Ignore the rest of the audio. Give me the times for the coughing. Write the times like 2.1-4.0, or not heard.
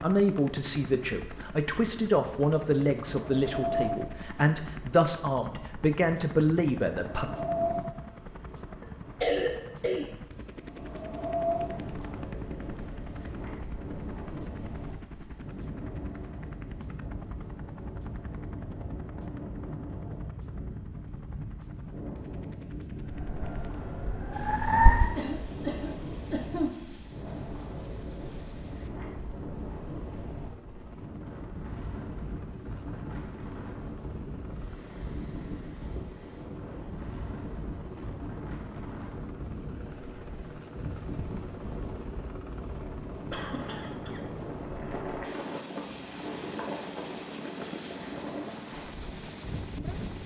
9.2-10.1, 25.1-26.8, 43.3-44.2.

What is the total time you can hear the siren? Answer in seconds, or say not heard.
2 s.